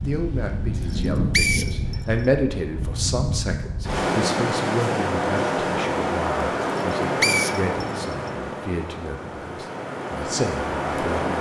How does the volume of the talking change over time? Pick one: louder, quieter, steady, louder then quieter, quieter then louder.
quieter.